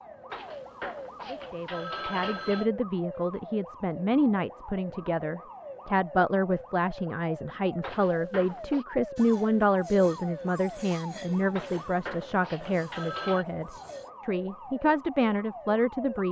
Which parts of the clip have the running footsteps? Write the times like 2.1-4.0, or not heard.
not heard.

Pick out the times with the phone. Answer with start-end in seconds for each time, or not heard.
0.3-2.7, 7.8-8.8, 11.5-13.4.